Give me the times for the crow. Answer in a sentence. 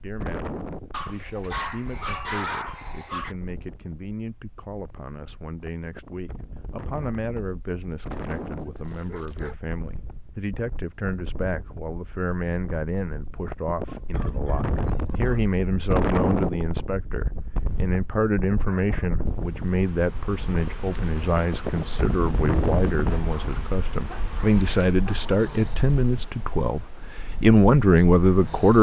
The crow can't be heard in this clip.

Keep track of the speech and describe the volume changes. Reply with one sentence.
The loudness of the speech goes up.